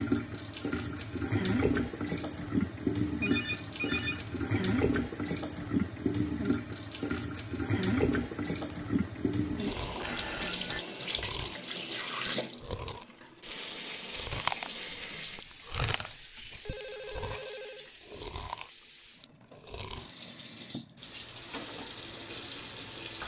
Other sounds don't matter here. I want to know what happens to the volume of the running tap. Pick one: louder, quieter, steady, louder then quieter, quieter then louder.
quieter.